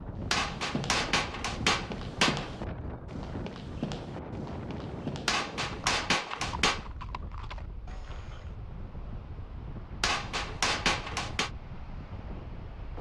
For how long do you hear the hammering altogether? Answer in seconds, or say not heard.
5 s.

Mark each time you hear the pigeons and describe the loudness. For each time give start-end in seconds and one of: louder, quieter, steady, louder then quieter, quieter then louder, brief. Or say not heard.
not heard.